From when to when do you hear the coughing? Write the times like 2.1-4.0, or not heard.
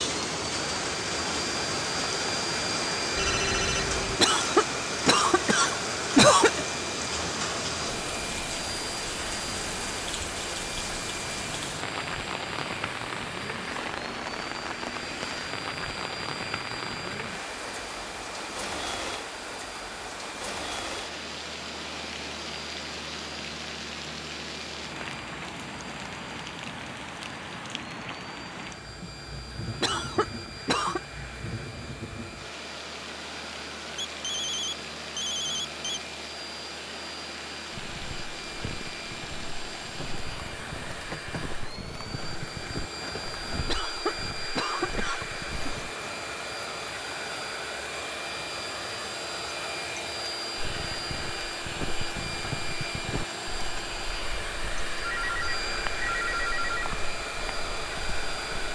4.2-6.7, 29.8-31.0, 43.6-45.7.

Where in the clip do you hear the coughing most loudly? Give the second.
6 s.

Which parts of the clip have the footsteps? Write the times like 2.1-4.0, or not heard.
37.7-45.9, 50.5-58.7.